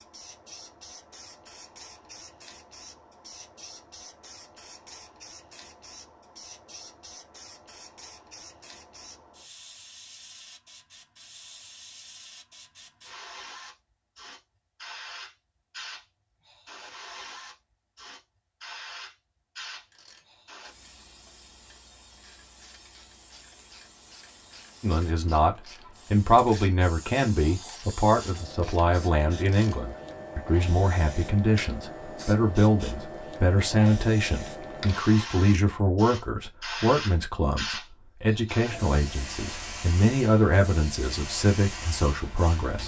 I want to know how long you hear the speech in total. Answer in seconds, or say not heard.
18 s.